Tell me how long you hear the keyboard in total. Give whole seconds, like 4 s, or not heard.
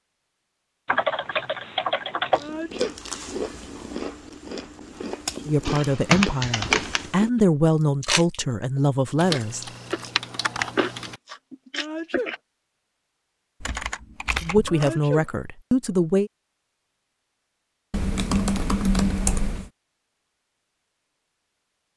8 s.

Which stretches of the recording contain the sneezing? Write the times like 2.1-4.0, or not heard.
2.4-3.0, 11.7-12.3, 14.7-15.3.